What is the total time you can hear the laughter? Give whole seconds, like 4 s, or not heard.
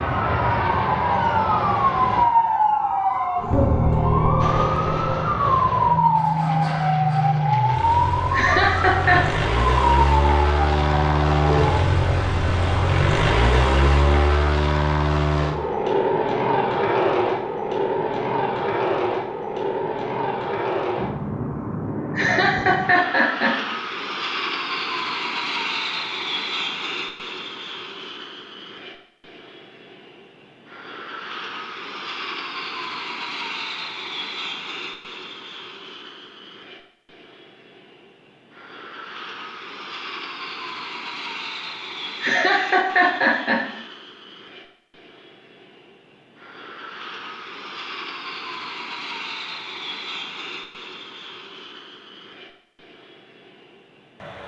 4 s.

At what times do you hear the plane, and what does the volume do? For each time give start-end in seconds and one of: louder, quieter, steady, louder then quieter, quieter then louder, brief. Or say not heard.
0.0-2.2 brief
4.4-54.4 quieter.